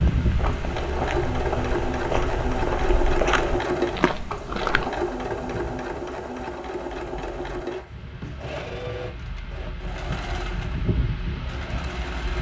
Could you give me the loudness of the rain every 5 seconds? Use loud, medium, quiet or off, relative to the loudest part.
loud, medium, loud.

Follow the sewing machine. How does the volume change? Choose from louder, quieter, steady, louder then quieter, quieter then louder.
quieter.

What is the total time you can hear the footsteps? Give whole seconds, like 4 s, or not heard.
5 s.